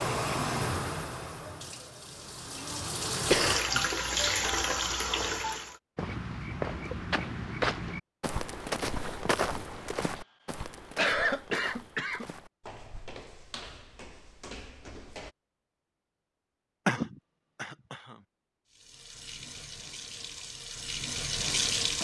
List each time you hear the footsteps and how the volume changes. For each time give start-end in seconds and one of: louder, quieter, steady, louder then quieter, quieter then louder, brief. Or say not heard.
6.0-15.3 quieter.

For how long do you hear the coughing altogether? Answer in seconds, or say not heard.
4 s.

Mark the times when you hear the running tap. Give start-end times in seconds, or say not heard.
0.0-5.8, 18.7-21.9.